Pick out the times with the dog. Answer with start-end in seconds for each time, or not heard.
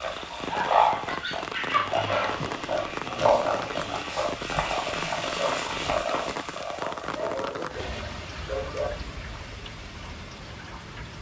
1.1-2.5, 7.2-8.9.